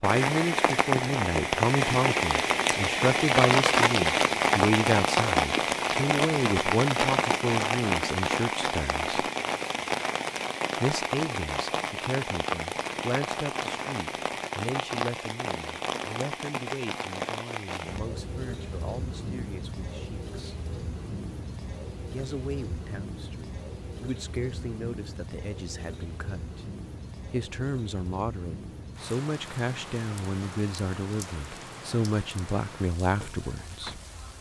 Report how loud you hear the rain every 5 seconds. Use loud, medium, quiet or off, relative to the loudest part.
loud, loud, medium, medium, quiet, quiet, quiet.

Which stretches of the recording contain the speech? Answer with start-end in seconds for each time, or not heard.
0.0-9.2, 10.8-20.6, 22.1-26.6, 27.3-34.0.